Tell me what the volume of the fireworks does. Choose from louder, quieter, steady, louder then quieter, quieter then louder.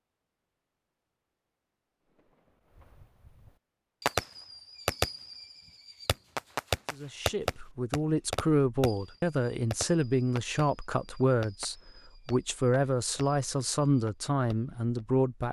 quieter.